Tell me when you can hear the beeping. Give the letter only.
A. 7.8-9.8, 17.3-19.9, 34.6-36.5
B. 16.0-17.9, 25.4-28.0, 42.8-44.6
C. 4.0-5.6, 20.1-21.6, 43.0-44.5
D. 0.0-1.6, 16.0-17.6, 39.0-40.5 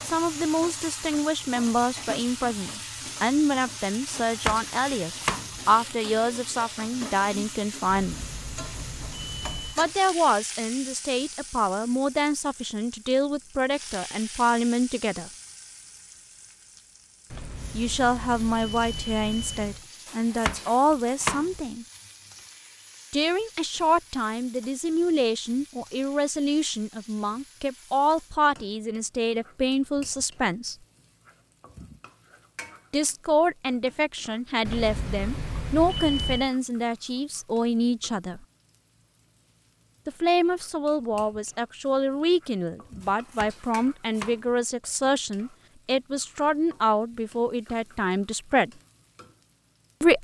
A.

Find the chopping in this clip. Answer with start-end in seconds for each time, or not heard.
4.0-5.6, 20.1-21.6, 43.0-44.5.